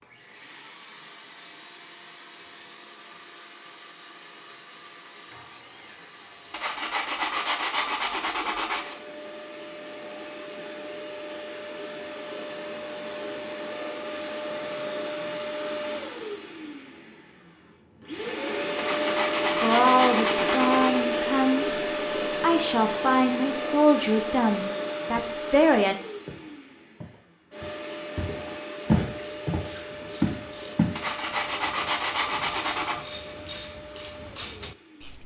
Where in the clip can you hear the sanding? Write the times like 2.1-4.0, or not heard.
6.5-8.9, 18.8-21.1, 30.9-33.0.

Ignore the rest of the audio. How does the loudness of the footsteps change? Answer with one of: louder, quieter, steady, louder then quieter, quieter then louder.
louder.